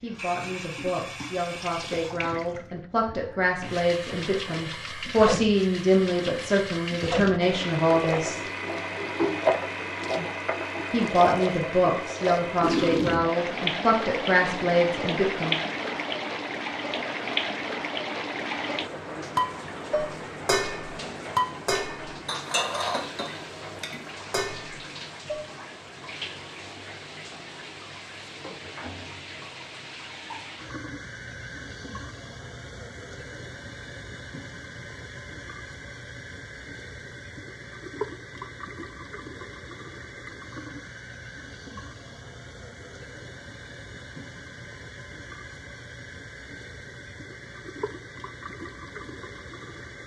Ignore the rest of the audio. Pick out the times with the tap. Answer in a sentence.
You can hear the tap from 0.1 to 50.0 s.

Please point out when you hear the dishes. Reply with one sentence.
The dishes can be heard from 19.4 to 25.4 s.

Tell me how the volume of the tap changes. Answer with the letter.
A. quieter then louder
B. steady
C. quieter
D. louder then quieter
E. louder
C.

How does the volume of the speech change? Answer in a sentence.
The loudness of the speech goes up.